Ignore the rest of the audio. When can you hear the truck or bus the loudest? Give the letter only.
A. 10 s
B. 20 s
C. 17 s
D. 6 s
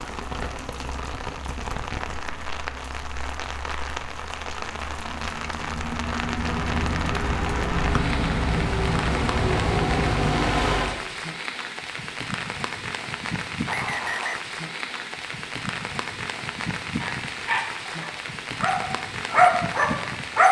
A.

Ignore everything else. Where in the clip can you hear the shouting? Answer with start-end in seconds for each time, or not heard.
not heard.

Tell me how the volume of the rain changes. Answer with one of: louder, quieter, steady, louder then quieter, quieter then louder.
steady.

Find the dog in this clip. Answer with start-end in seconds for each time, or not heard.
17.0-20.4.